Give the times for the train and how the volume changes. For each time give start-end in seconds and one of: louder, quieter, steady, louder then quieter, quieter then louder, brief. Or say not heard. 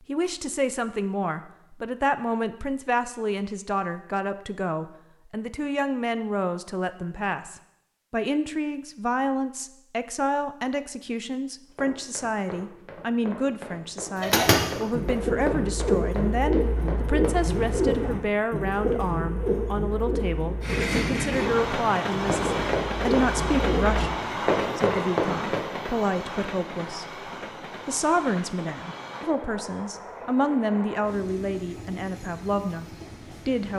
20.6-33.7 quieter.